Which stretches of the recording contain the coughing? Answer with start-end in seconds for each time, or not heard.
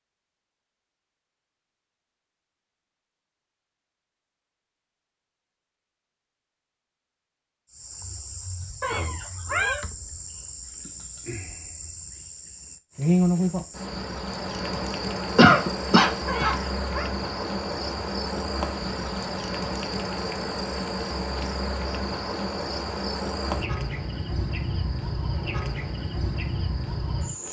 15.3-16.6.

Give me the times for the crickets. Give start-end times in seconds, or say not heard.
7.7-27.4.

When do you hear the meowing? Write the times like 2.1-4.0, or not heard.
8.8-9.8, 16.2-17.1.